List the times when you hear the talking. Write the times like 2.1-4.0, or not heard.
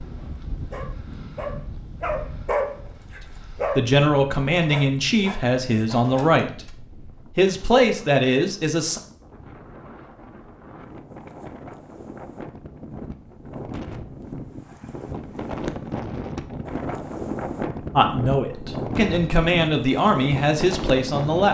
3.2-9.0, 17.9-21.5.